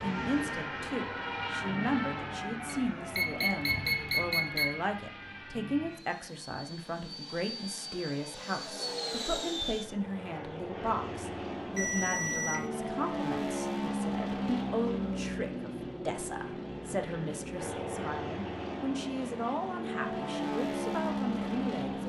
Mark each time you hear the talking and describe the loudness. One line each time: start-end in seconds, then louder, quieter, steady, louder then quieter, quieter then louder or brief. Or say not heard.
0.0-22.0 steady.